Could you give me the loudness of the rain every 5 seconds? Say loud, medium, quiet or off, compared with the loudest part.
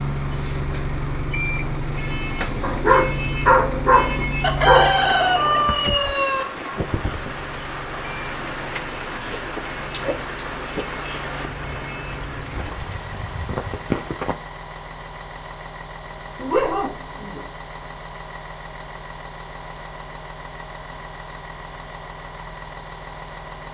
medium, loud, loud, off, off.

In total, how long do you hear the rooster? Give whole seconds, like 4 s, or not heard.
2 s.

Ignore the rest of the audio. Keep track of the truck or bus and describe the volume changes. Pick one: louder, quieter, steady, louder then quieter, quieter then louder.
quieter.